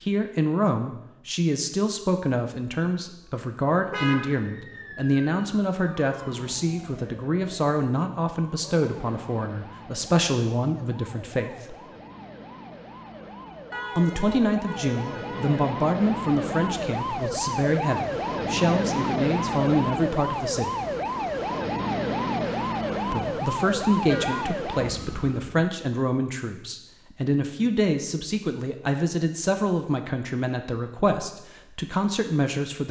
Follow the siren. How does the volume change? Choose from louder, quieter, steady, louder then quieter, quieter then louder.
louder.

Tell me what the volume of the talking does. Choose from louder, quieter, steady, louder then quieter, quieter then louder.
steady.